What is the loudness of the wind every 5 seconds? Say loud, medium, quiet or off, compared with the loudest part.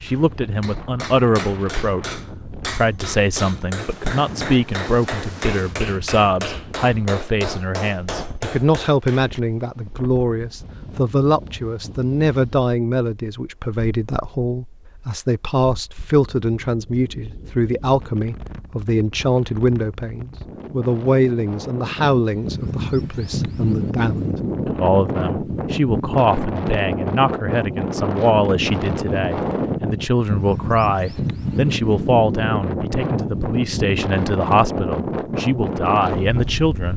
quiet, quiet, quiet, quiet, loud, loud, loud, loud.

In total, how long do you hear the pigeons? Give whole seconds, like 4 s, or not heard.
not heard.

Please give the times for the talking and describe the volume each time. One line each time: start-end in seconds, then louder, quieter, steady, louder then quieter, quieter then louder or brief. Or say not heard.
0.0-36.9 steady.